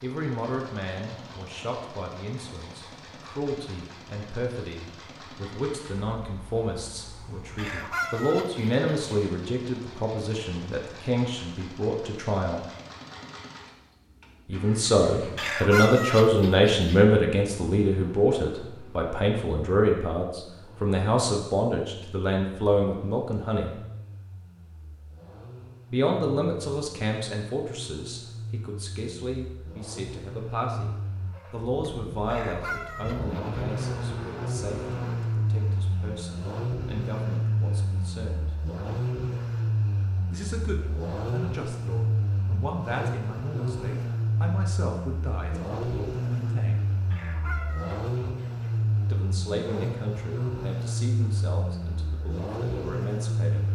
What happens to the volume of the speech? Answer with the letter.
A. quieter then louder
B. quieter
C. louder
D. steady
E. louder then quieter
E.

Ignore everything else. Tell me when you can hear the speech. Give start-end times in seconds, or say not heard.
0.0-12.6, 14.4-23.8, 25.9-38.5, 40.3-46.9, 49.0-53.6.